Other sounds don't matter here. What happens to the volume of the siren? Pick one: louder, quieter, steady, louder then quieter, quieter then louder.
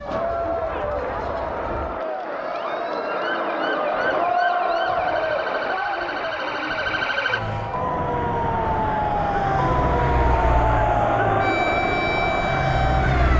louder.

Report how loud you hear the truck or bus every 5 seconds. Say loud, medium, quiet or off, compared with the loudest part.
off, loud, loud.